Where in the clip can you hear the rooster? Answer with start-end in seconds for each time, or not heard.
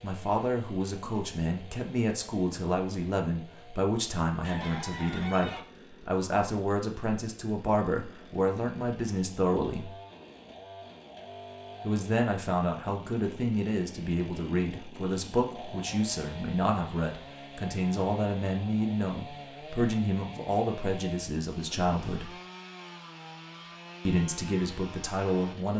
4.4-5.6.